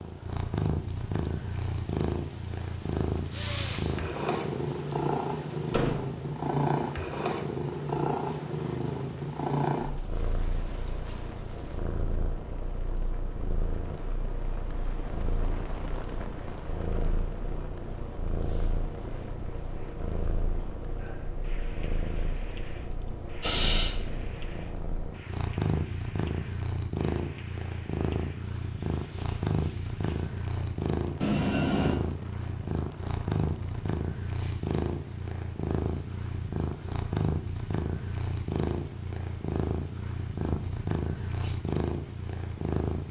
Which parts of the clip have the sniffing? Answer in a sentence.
The sniffing can be heard from 3.3 to 4.0 s and from 23.4 to 24.0 s.